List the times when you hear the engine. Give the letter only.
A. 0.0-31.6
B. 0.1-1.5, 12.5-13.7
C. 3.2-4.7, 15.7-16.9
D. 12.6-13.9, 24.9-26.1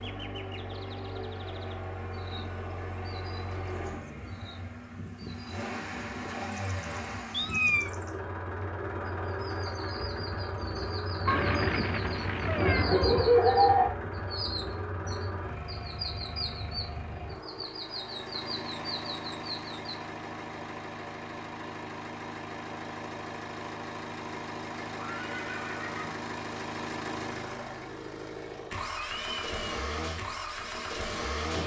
A.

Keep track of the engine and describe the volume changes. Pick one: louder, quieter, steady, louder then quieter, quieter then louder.
steady.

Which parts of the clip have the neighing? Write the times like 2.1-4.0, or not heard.
12.6-13.9, 24.9-26.1.